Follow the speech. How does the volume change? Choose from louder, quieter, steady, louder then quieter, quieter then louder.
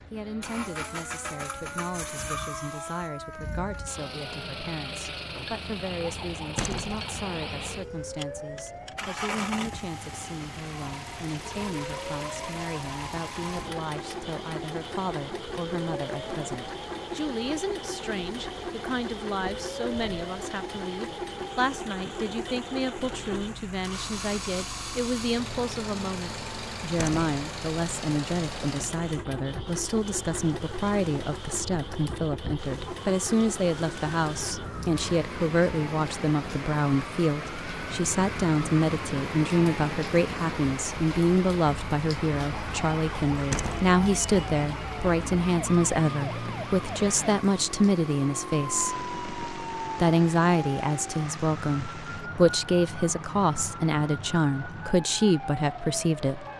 louder.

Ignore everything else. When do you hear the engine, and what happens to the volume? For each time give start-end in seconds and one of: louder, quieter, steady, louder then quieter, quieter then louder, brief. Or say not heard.
0.0-34.7 steady.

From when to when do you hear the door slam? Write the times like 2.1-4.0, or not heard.
6.5-7.0, 26.9-27.4, 43.5-44.0.